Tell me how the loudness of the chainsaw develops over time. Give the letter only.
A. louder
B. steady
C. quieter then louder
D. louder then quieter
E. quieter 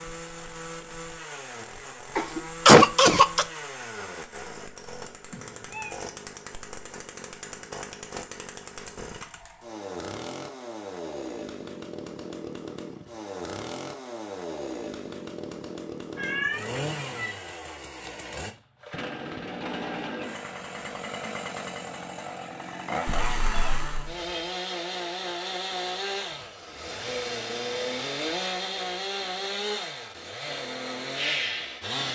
A.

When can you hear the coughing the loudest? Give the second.
3 s.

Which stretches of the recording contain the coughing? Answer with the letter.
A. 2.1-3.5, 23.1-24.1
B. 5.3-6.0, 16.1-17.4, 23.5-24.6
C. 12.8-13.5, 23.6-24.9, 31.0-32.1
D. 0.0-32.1
A.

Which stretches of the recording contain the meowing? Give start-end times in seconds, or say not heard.
5.3-6.0, 16.1-17.4, 23.5-24.6.